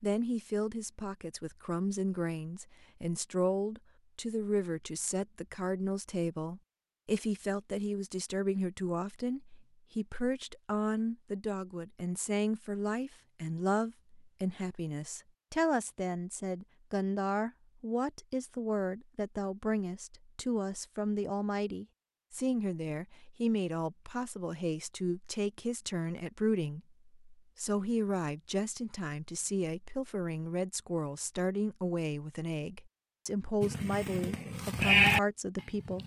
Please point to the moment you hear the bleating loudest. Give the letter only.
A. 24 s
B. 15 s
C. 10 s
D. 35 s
D.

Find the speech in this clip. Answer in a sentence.
You can hear the speech from 0.0 to 36.0 s.